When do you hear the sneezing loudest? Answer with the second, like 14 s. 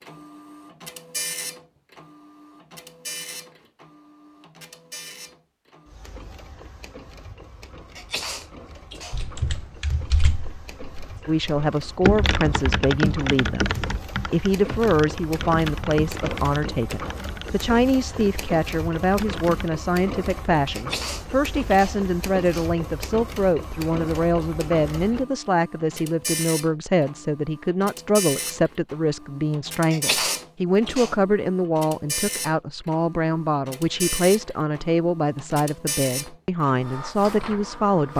30 s.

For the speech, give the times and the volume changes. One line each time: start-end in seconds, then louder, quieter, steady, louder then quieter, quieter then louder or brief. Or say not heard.
11.2-38.1 steady.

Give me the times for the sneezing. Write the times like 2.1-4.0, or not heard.
8.0-9.2, 20.7-22.7, 29.9-31.1.